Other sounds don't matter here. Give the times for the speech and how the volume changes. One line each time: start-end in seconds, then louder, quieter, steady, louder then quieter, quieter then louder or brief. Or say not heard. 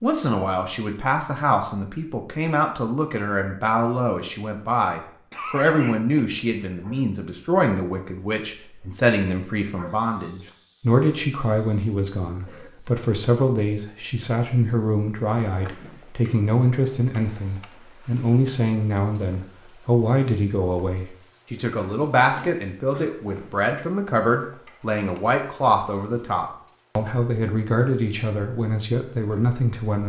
0.0-30.0 steady.